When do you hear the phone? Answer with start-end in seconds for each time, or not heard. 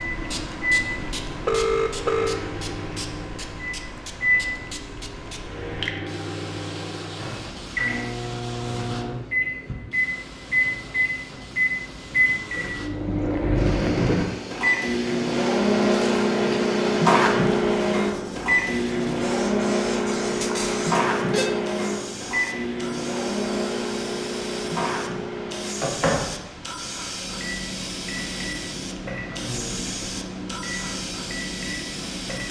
0.9-2.4, 20.4-21.6.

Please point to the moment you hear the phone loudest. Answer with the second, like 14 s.
2 s.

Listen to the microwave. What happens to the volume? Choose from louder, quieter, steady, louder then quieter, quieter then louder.
louder then quieter.